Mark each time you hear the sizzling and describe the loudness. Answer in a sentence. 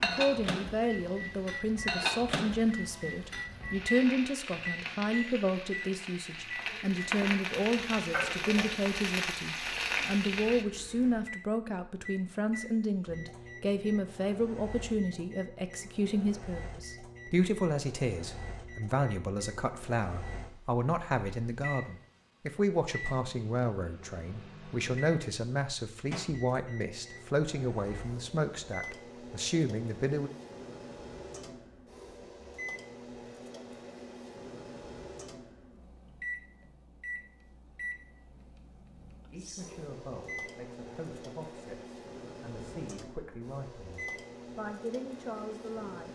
You can hear the sizzling from 0.0 to 10.7 s, getting louder.